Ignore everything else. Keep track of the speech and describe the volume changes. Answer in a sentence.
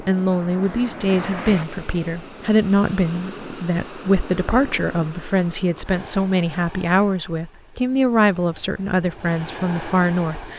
The volume of the speech stays about the same.